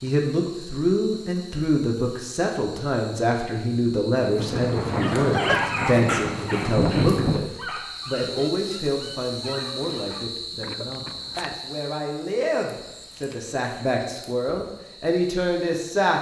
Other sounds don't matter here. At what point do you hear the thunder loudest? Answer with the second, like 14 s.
7 s.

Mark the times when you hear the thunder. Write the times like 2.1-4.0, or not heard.
4.3-7.5.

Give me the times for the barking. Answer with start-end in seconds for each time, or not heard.
4.8-10.3.